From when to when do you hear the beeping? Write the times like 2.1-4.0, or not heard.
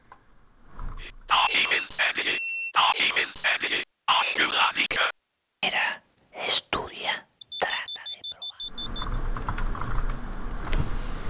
1.4-2.8, 7.4-8.9.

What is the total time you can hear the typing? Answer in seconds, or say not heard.
4 s.